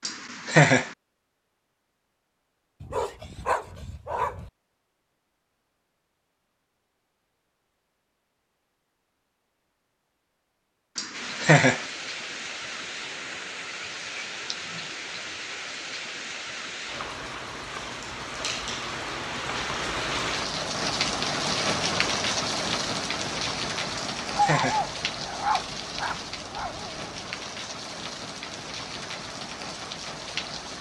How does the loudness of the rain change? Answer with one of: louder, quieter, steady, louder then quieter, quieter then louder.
louder then quieter.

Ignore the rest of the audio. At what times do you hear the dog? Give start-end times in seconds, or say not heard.
2.8-4.5, 24.3-27.2.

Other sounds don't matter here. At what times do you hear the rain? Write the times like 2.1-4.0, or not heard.
11.1-30.7.